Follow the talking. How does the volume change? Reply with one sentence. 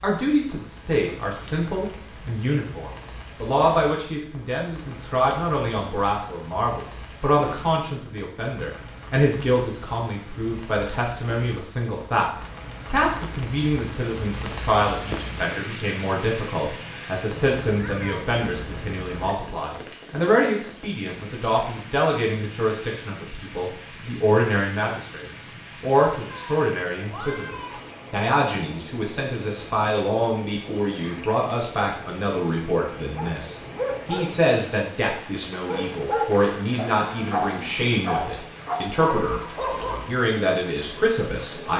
The volume of the talking stays about the same.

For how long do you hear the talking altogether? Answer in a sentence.
The talking can be heard for 41 seconds in total.